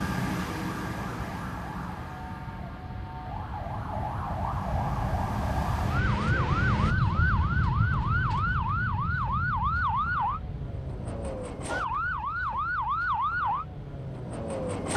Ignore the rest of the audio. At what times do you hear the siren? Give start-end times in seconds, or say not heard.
0.0-14.9.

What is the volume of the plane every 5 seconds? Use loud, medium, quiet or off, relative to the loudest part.
medium, loud, quiet.